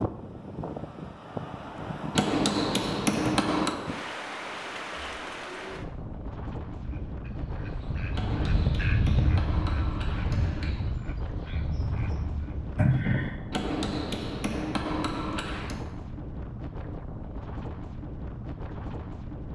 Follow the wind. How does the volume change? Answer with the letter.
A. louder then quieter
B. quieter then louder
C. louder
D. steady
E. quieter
D.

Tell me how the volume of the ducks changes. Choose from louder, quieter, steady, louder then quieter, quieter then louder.
louder then quieter.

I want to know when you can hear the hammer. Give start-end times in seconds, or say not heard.
2.1-3.8, 8.1-10.8, 13.5-15.8.